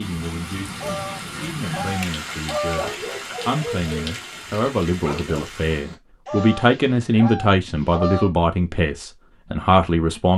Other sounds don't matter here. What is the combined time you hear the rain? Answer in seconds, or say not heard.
6 s.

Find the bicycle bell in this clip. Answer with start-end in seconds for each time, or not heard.
not heard.